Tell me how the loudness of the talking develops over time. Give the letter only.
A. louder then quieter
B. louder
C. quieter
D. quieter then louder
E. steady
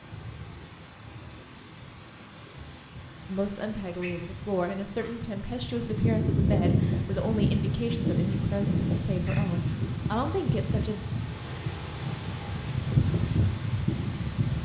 E.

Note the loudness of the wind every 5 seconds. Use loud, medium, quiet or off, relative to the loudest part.
quiet, loud, loud.